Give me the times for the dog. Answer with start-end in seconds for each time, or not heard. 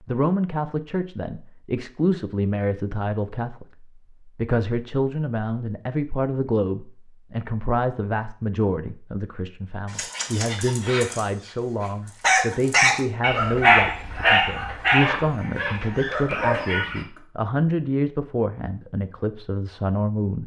9.8-17.2.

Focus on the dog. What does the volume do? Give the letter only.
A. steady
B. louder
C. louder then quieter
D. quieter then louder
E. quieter
C.